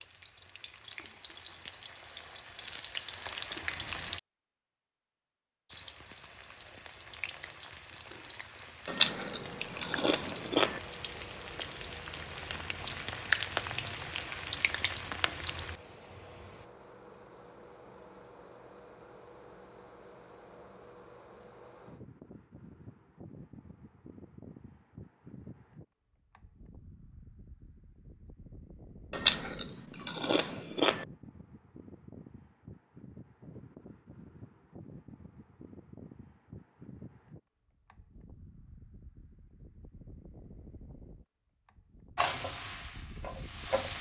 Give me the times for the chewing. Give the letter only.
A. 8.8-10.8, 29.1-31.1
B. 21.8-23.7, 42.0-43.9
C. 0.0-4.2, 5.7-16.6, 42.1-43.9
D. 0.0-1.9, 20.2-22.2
A.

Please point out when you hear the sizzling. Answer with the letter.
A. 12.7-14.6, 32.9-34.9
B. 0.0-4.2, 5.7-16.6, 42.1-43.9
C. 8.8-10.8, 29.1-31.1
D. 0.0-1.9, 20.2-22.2
B.